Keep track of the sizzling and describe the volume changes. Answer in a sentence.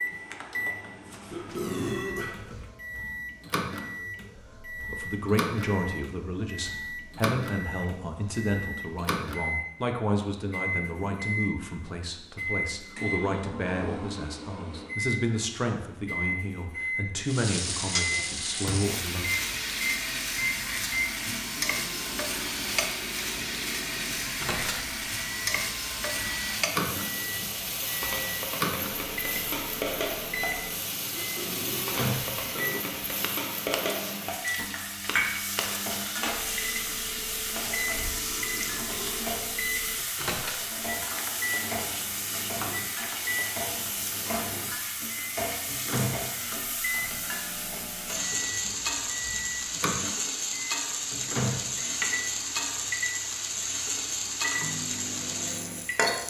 The loudness of the sizzling stays about the same.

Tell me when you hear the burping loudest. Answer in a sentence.
The loudest moment of the burping is at 2 seconds.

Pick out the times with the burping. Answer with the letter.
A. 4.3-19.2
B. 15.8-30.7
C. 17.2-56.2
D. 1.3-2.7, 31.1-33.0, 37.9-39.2
D.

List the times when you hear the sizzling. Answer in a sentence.
You can hear the sizzling from 17.2 to 56.2 s.